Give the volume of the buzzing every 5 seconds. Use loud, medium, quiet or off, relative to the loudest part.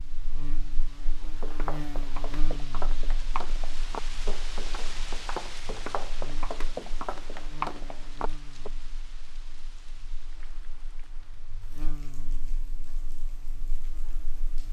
loud, medium, medium.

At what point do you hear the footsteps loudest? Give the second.
8 s.